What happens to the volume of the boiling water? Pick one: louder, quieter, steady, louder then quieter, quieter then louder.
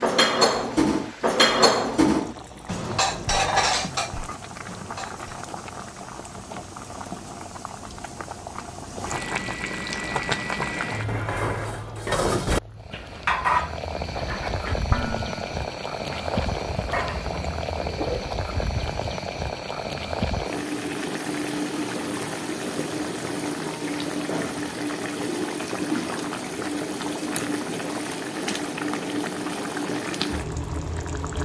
louder.